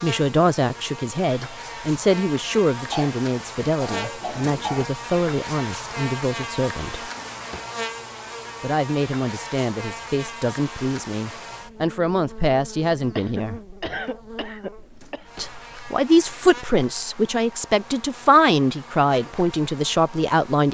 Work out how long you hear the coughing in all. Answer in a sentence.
You can hear the coughing for 4 seconds altogether.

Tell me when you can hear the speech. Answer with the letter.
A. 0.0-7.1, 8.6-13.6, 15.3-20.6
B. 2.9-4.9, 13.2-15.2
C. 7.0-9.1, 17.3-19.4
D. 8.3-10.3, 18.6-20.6
A.